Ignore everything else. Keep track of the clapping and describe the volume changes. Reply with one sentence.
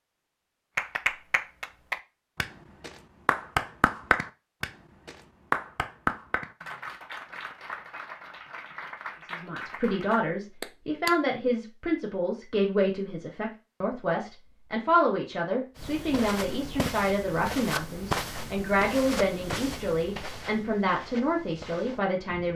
The volume of the clapping goes up, then down.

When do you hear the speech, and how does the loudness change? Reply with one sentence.
You can hear the speech from 9.3 to 22.5 s, at a steady volume.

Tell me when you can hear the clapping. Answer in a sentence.
You can hear the clapping from 0.8 to 11.2 s.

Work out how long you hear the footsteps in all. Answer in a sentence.
You can hear the footsteps for 7 seconds altogether.